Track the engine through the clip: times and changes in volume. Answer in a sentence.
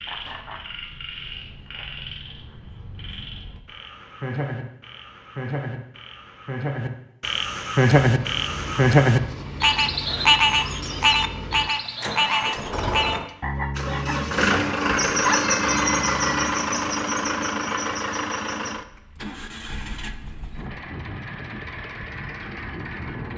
You can hear the engine from 8.0 to 23.3 s, getting louder then quieter.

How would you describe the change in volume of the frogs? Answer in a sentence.
The volume of the frogs goes up, then down.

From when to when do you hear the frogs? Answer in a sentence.
You can hear the frogs from 0.0 to 16.6 s.